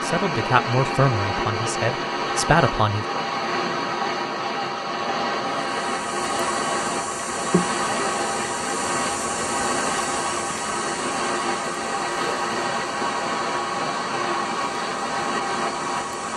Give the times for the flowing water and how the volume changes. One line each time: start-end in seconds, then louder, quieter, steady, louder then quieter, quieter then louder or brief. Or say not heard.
0.0-16.3 steady.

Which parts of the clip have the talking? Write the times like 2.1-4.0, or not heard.
0.0-3.0.